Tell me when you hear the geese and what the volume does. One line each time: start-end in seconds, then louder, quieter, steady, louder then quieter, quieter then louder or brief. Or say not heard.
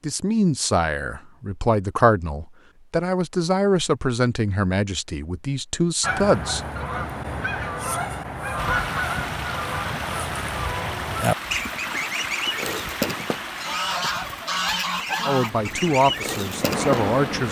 6.0-17.2 steady.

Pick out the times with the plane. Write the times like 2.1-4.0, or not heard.
15.4-17.4.